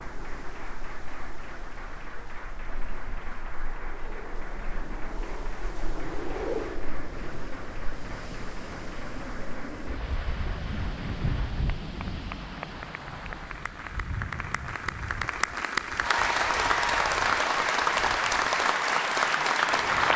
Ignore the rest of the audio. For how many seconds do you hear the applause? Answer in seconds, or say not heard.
20 s.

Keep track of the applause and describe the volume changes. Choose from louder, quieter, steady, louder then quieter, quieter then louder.
louder.